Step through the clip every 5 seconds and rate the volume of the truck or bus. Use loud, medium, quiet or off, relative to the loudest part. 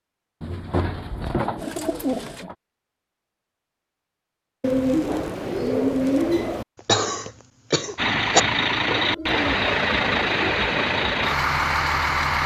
off, loud, loud.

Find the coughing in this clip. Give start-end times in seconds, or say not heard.
6.8-8.4.